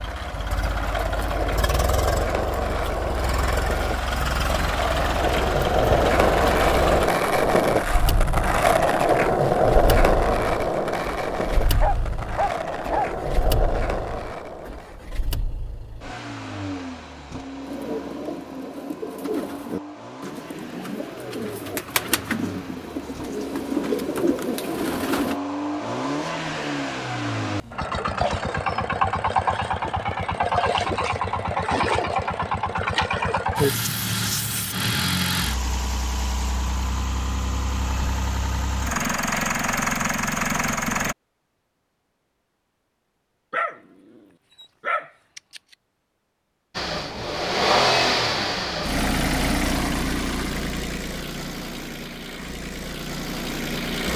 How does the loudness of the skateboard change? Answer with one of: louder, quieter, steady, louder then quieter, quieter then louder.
louder then quieter.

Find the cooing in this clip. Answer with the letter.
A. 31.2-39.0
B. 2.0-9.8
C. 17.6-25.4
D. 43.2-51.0
C.